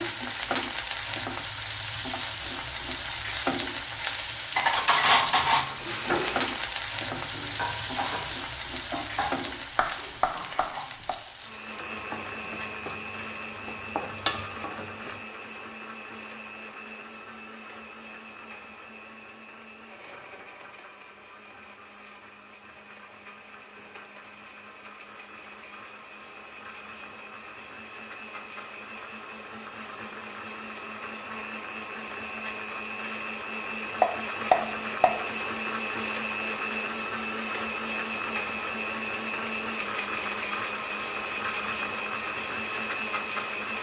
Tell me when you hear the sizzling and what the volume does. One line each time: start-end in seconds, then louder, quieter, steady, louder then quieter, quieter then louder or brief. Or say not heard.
0.0-15.2 quieter.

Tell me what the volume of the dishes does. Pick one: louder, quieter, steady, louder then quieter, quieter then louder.
quieter.